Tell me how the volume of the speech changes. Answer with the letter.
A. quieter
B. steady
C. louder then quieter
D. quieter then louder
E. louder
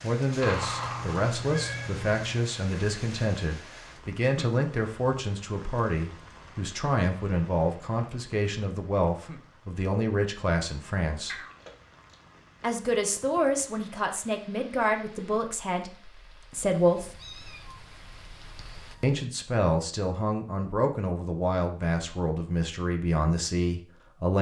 B.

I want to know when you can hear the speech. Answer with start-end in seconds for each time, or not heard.
0.0-11.4, 12.6-17.1, 19.0-24.3.